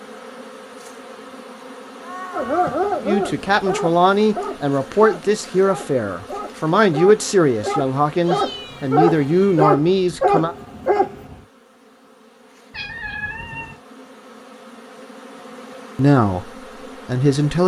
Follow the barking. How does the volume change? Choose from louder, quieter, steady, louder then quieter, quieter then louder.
quieter then louder.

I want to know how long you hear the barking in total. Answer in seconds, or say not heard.
9 s.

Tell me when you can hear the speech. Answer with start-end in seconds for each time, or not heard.
3.0-10.6, 15.9-17.6.